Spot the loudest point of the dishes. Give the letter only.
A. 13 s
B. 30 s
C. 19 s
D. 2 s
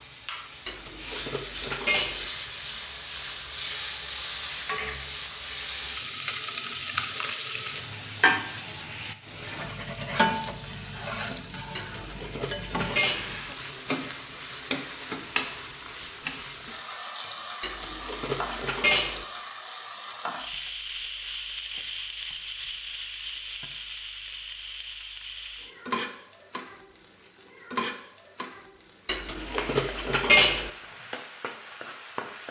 B.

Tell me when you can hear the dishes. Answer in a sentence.
You can hear the dishes from 0.7 to 2.2 s, from 11.8 to 13.3 s, from 17.6 to 19.2 s and from 29.1 to 30.7 s.